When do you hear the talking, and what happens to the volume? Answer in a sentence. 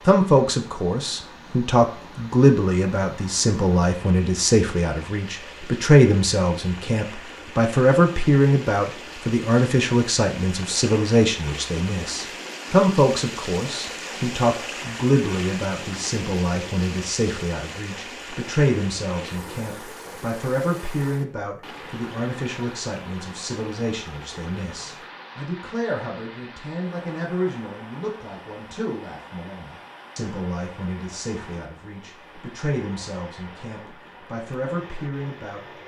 You can hear the talking from 0.1 to 35.6 s, getting quieter.